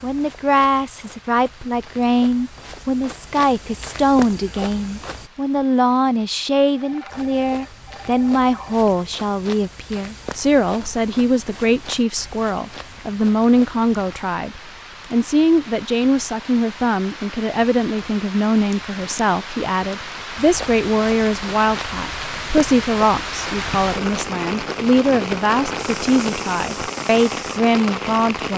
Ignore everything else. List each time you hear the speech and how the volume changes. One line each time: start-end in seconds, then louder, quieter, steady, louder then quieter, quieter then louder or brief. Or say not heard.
0.0-28.5 steady.